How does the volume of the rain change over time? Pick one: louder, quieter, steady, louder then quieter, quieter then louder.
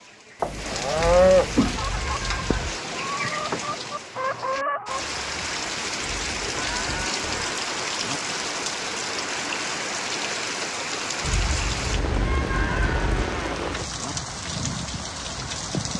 steady.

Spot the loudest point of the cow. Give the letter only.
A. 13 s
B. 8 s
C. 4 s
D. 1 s
D.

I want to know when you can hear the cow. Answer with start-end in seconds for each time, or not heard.
0.4-1.8, 6.5-8.2, 12.6-14.2.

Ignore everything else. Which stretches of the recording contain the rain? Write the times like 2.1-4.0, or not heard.
0.0-15.9.